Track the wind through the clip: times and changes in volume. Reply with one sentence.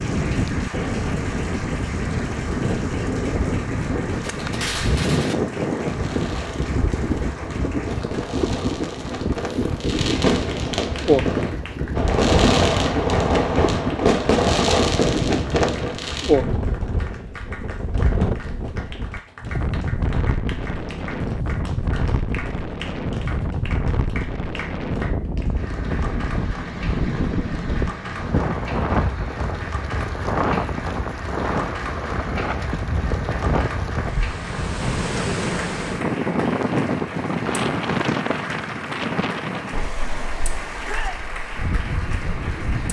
The wind can be heard from 0.0 to 42.8 s, at a steady volume.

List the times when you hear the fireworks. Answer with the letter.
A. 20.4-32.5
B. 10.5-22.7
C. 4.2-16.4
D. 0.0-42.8
C.